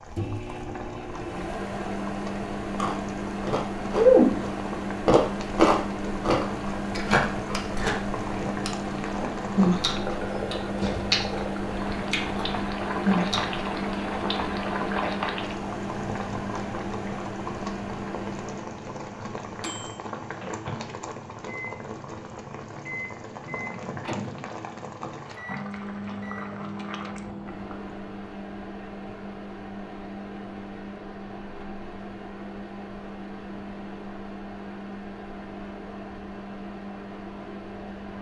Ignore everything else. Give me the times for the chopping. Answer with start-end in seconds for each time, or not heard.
not heard.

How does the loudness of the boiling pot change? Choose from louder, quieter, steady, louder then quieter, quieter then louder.
louder then quieter.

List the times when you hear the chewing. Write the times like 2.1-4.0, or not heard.
2.8-13.6.